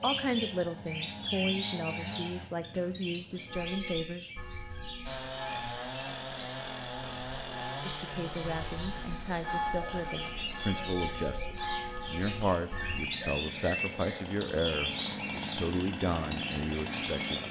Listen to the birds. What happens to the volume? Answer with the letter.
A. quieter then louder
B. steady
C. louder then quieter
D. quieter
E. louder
A.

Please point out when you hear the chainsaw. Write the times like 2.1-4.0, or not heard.
0.0-2.5, 5.0-17.4.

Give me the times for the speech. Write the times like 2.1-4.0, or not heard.
0.0-4.8, 7.8-17.4.